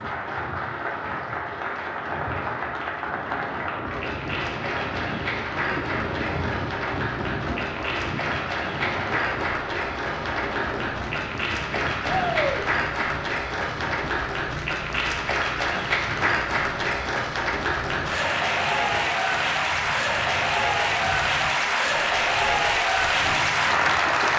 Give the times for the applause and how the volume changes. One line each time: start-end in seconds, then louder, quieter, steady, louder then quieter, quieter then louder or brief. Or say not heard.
0.0-24.3 louder.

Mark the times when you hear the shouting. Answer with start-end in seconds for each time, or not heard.
12.1-12.7.